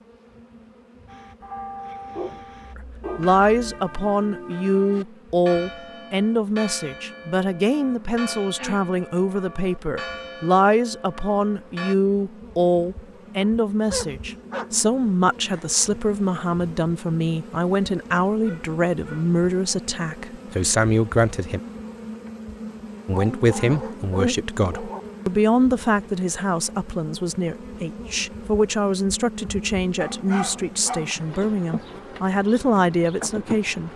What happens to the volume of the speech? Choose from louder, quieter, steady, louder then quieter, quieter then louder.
steady.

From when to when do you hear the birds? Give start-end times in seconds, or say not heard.
not heard.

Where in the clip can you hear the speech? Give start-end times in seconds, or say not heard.
2.8-21.6, 23.1-33.9.